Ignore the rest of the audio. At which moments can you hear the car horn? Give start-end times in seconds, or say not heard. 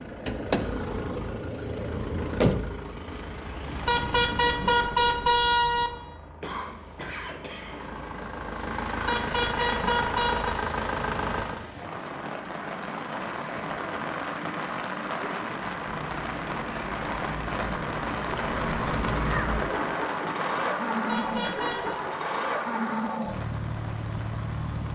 3.9-5.9, 9.1-10.6, 21.1-22.0.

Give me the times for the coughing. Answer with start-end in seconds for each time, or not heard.
6.4-7.8.